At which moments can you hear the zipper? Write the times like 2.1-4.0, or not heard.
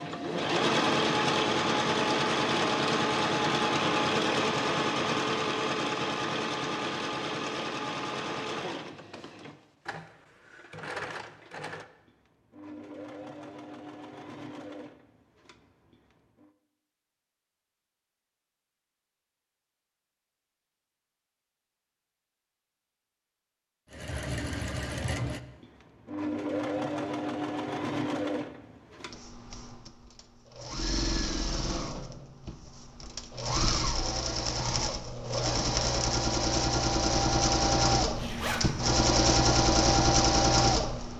38.0-38.6.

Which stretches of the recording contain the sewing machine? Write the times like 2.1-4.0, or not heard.
0.0-16.5, 23.9-41.1.